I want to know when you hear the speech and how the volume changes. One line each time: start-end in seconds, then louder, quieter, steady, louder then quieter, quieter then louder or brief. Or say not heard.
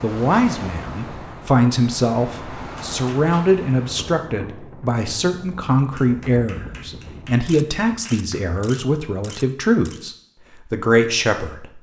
0.0-11.7 steady.